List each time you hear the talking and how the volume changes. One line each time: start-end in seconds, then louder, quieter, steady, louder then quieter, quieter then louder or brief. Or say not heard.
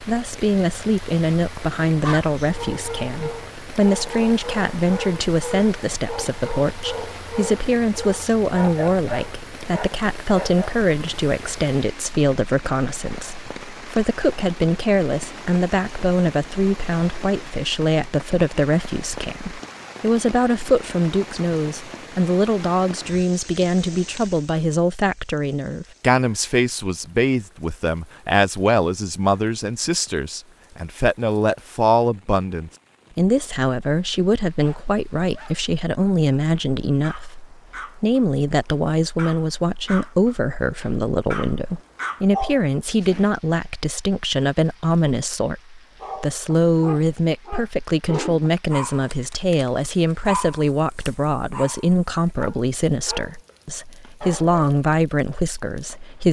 0.0-56.2 steady.